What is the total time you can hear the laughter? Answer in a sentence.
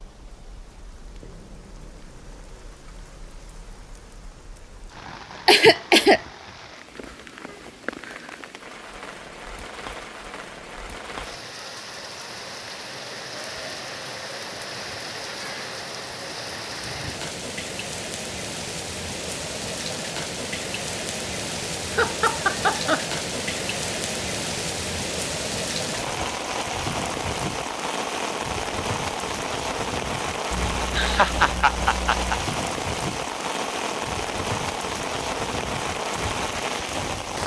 The laughter can be heard for 4 seconds in total.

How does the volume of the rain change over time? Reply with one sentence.
The loudness of the rain goes up.